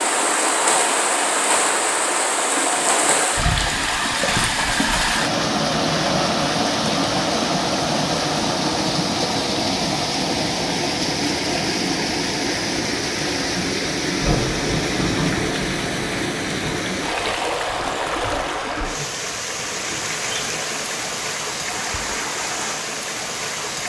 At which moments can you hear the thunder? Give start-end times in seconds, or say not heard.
14.2-16.8.